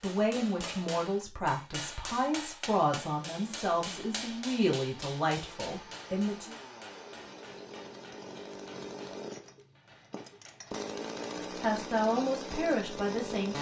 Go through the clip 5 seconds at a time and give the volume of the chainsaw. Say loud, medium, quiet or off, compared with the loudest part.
quiet, medium, loud.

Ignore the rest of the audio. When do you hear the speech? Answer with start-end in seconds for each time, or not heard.
0.0-6.5, 11.6-13.5.